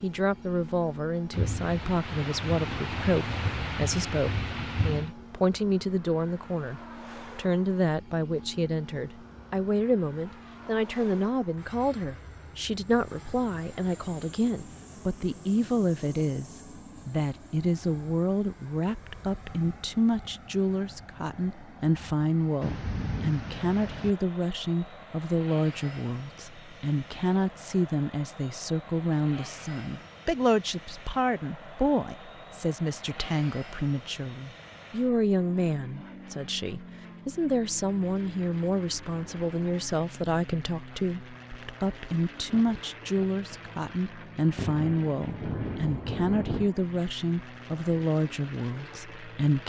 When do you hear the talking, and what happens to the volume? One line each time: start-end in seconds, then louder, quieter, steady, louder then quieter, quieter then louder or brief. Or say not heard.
0.0-49.6 steady.